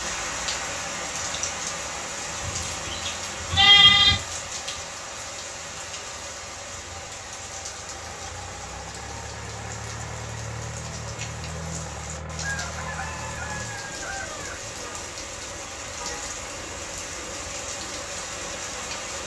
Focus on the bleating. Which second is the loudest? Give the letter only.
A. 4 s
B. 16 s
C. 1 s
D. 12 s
A.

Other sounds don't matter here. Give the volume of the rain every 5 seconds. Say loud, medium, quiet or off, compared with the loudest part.
loud, medium, medium, loud.